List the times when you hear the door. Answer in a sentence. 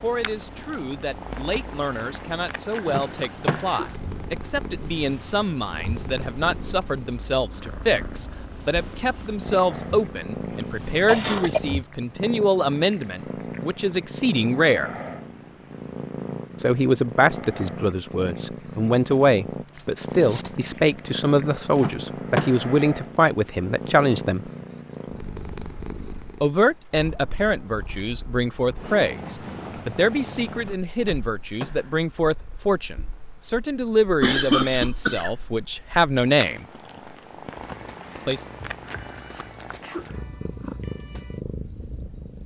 The door can be heard from 2.9 to 3.9 s, from 21.8 to 22.8 s and from 31.0 to 32.0 s.